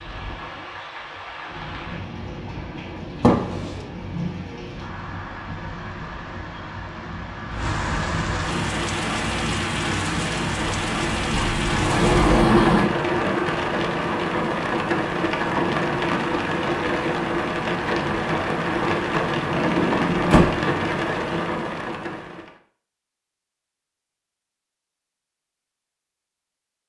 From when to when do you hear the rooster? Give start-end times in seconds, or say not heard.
not heard.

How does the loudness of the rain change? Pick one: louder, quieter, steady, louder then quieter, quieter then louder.
louder.